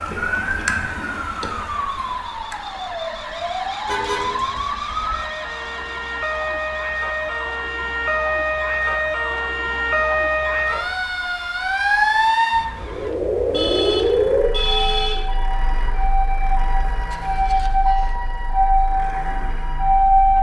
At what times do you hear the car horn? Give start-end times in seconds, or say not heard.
3.9-4.7, 13.5-15.8.